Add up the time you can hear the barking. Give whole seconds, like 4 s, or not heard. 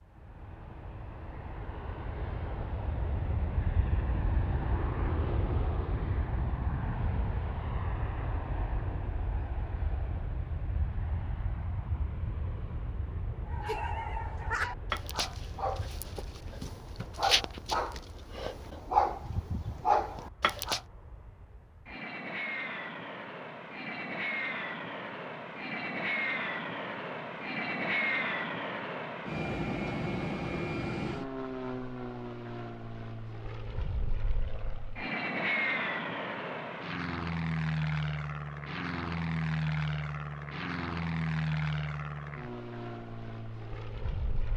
7 s.